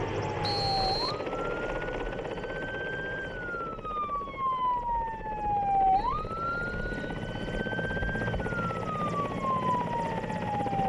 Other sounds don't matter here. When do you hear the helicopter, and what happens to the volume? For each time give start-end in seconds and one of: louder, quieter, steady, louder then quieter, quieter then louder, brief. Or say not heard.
0.0-10.8 quieter then louder.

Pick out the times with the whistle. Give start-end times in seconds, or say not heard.
0.4-1.2, 6.0-7.2.